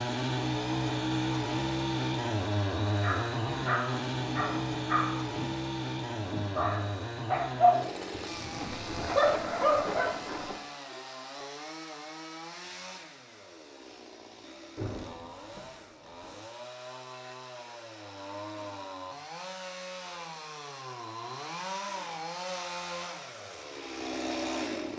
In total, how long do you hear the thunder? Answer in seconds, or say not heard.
4 s.